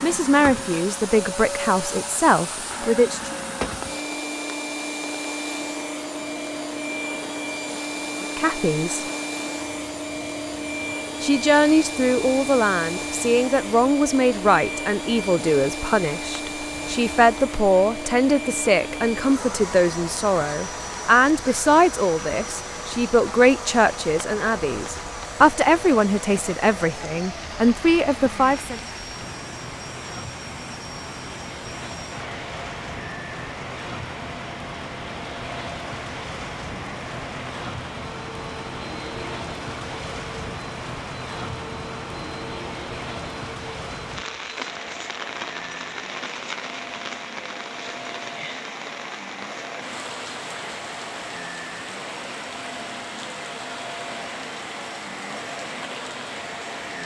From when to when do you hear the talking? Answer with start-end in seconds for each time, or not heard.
0.0-3.4, 8.2-9.1, 11.2-28.8.